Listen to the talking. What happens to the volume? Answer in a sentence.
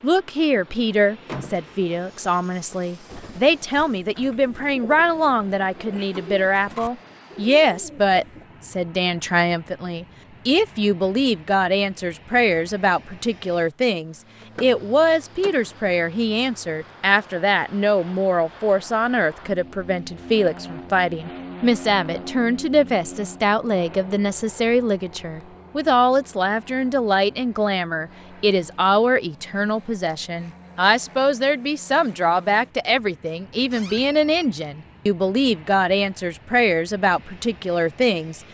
The volume of the talking stays about the same.